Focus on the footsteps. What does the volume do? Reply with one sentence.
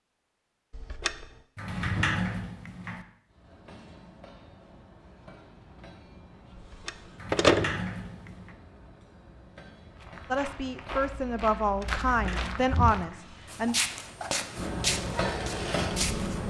The loudness of the footsteps goes up.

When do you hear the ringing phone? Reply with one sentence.
The ringing phone can be heard from 0.7 to 1.2 s, from 6.5 to 7.8 s and from 11.6 to 12.4 s.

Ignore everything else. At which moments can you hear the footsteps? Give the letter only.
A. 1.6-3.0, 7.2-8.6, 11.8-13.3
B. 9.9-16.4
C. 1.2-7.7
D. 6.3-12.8
B.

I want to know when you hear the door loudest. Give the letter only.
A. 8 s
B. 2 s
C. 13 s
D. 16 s
B.